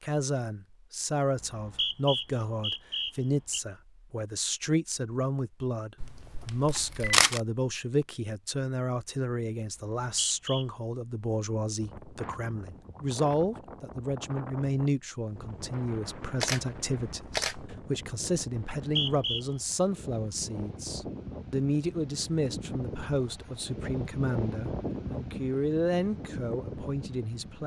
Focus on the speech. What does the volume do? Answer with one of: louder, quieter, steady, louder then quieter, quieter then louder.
steady.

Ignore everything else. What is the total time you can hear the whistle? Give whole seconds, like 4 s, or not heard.
4 s.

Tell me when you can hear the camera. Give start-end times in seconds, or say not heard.
6.0-7.4, 16.4-17.6.